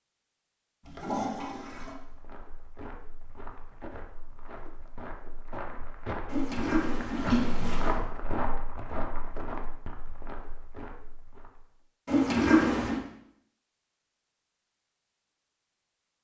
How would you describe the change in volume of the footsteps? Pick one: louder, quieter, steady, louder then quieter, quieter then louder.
louder then quieter.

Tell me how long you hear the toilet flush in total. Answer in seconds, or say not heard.
4 s.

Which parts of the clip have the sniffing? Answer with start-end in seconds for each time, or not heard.
not heard.